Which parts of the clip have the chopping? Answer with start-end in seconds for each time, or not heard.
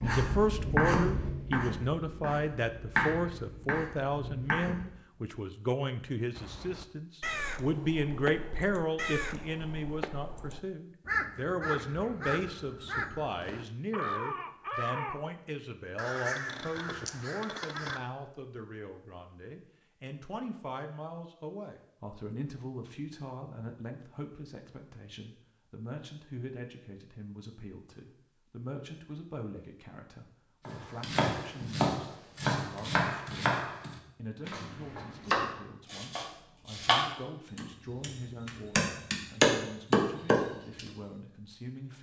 0.0-5.0, 30.6-40.9.